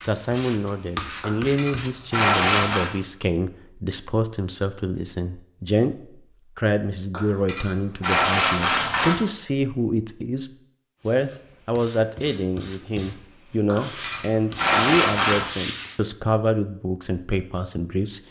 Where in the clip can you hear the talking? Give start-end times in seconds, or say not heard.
0.0-18.2.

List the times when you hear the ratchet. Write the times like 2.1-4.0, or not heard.
1.2-2.9, 7.1-9.2, 13.7-15.4.